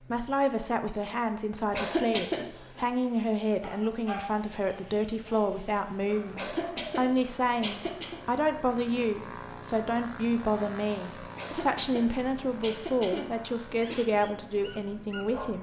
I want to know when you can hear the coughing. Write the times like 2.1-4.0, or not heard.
1.7-2.8, 6.3-8.2, 11.3-14.1.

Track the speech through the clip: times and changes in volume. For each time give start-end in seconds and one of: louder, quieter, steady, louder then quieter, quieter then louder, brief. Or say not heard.
0.1-15.5 steady.